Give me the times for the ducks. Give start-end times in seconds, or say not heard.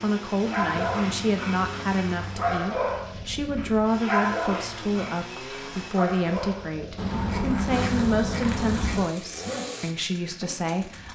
0.6-2.6, 7.0-9.0.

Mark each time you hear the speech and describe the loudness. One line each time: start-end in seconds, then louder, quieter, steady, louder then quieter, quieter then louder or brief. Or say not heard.
0.0-11.0 steady.